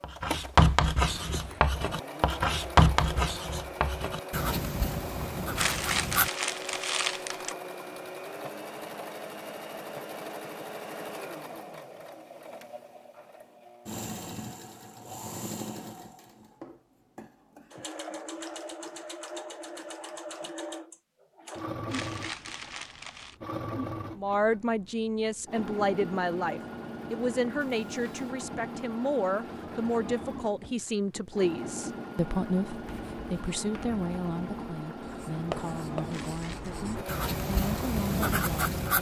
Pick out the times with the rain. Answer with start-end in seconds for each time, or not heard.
not heard.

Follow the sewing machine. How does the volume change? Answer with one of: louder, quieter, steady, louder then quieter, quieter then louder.
steady.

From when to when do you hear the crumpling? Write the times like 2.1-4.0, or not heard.
5.5-7.5, 21.9-23.4, 36.0-36.8.